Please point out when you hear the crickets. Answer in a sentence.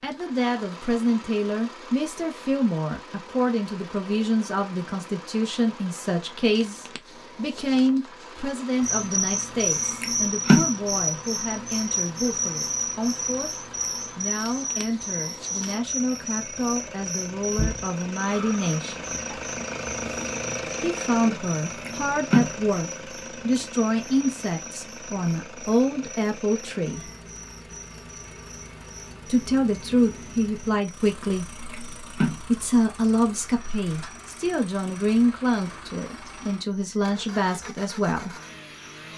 You can hear the crickets from 8.8 to 39.1 s.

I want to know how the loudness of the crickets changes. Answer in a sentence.
The loudness of the crickets goes down.